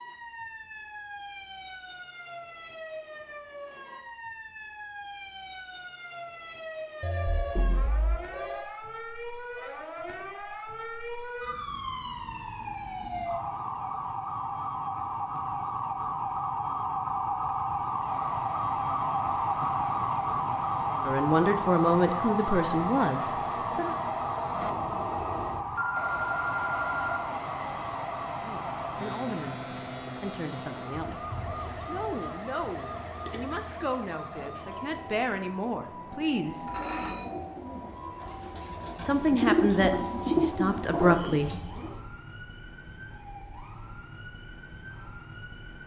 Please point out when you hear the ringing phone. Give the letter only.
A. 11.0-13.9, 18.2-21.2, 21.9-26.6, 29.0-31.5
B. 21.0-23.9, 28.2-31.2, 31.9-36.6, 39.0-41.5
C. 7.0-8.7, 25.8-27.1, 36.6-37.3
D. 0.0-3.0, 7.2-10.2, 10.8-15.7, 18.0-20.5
C.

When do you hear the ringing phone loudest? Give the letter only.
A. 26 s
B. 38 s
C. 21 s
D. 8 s
A.